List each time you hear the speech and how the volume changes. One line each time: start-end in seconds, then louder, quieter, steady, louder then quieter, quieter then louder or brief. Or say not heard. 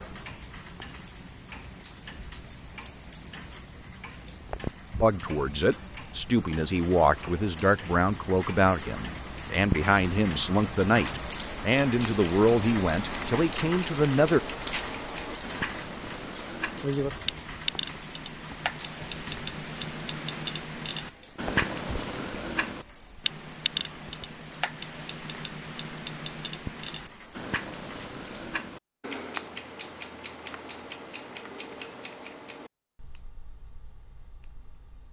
5.0-14.4 steady.